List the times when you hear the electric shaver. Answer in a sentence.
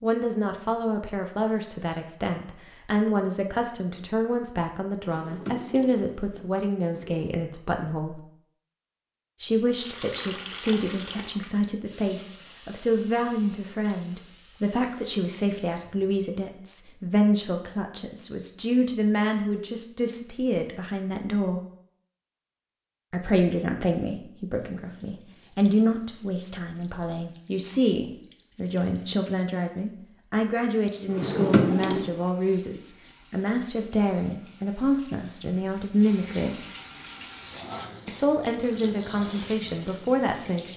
The electric shaver can't be heard in this clip.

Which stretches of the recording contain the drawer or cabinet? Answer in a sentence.
You can hear the drawer or cabinet from 5.0 to 7.3 s and from 31.1 to 32.1 s.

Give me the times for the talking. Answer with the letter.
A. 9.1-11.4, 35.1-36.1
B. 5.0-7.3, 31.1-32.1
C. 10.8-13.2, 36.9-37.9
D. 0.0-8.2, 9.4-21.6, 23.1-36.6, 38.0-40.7
D.